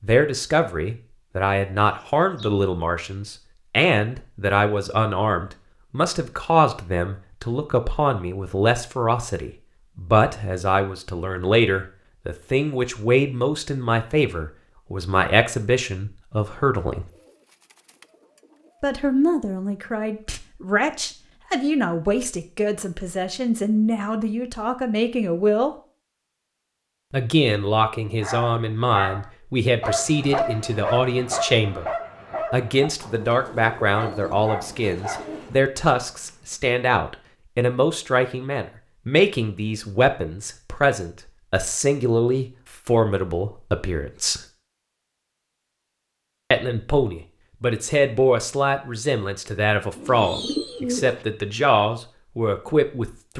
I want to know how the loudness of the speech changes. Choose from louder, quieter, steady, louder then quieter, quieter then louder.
steady.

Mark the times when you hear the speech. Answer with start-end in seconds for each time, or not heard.
0.0-17.1, 18.8-25.7, 27.1-31.9, 32.5-44.4, 46.5-53.3.